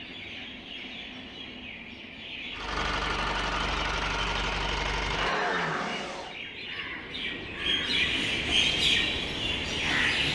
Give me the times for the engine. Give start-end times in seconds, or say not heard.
2.5-6.4.